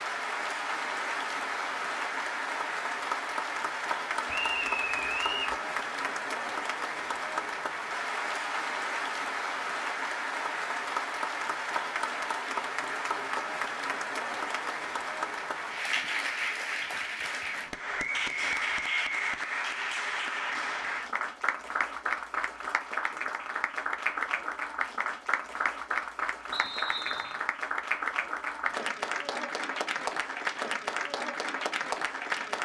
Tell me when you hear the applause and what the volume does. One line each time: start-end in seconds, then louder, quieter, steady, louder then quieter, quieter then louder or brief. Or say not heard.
0.0-32.5 steady.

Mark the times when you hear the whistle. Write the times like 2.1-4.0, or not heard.
4.2-5.5, 17.9-19.4, 26.5-27.4.